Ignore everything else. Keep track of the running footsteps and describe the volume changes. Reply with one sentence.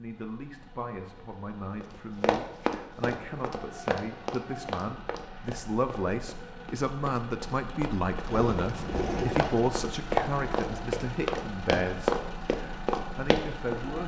The volume of the running footsteps goes down, then up.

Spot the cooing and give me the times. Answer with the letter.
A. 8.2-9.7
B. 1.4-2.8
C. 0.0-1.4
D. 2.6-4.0
A.